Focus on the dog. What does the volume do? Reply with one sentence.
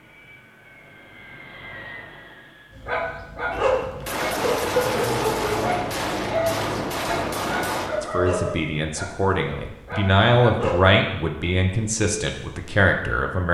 The loudness of the dog goes down.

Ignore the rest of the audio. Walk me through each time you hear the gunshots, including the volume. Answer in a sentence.
You can hear the gunshots from 3.5 to 7.9 s, at a steady volume.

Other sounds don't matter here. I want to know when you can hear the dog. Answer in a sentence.
The dog can be heard from 2.8 to 10.9 s.